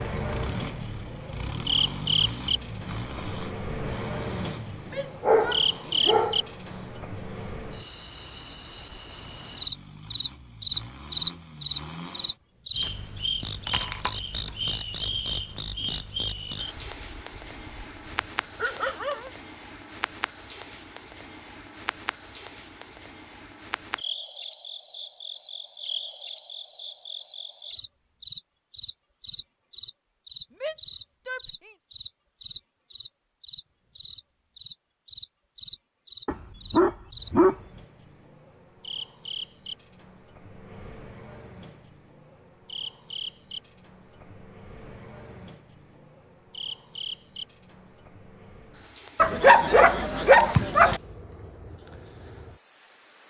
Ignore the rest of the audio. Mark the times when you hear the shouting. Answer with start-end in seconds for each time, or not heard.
4.8-6.2, 30.5-31.8.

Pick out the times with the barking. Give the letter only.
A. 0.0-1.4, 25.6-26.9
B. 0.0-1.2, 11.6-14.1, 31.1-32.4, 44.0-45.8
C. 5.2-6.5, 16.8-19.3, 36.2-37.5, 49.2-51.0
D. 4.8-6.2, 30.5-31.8
C.